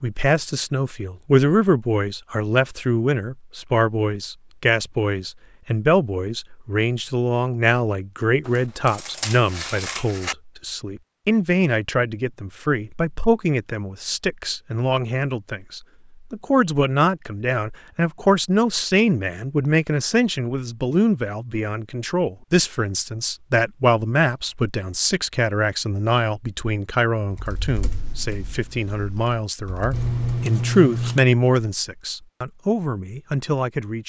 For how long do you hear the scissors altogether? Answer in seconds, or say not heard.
3 s.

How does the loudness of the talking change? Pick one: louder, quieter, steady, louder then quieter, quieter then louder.
steady.